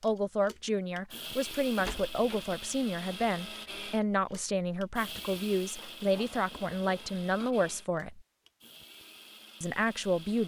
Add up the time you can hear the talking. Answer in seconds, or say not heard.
9 s.